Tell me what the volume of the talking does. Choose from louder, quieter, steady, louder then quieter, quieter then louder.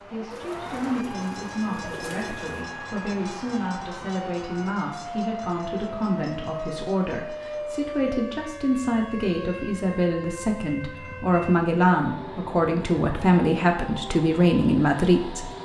louder.